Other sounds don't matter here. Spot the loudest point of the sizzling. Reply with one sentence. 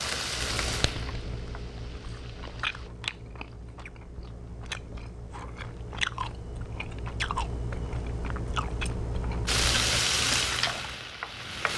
The loudest moment of the sizzling is at 10 seconds.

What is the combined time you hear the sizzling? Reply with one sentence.
The sizzling can be heard for 5 seconds in total.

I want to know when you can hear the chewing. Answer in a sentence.
You can hear the chewing from 0.3 to 10.9 s.